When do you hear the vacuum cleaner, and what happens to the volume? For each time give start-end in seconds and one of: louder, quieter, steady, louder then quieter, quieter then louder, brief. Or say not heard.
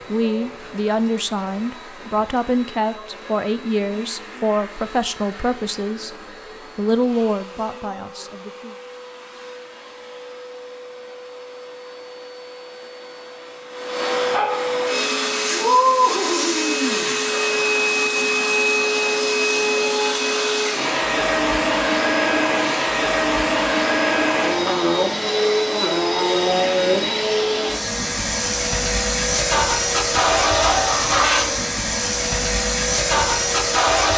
0.0-34.1 louder.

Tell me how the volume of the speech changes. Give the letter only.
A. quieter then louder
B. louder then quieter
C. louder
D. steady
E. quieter
D.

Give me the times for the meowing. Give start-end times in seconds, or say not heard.
30.1-31.2.